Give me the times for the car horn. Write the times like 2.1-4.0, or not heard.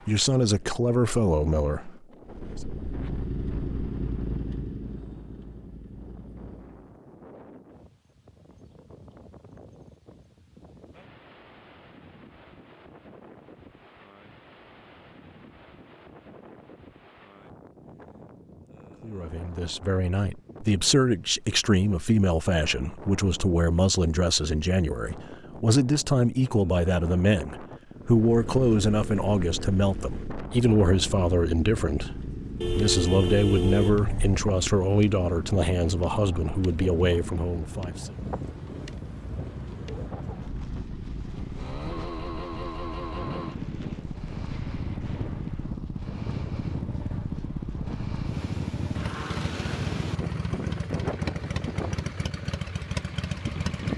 32.6-34.4.